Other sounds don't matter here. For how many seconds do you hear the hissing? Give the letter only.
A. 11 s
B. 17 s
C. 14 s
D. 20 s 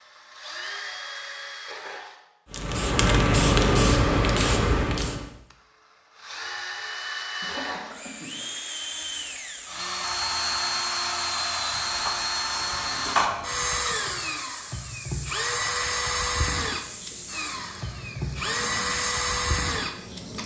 A.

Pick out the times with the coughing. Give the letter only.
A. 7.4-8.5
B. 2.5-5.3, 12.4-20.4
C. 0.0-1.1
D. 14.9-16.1
A.